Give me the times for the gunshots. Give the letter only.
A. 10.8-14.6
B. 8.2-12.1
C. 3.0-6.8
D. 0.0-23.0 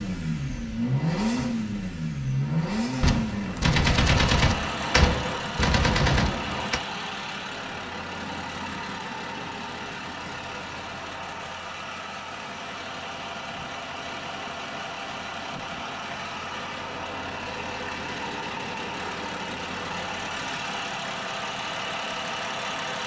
C.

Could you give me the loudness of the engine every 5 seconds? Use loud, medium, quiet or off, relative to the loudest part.
loud, medium, medium, medium, loud.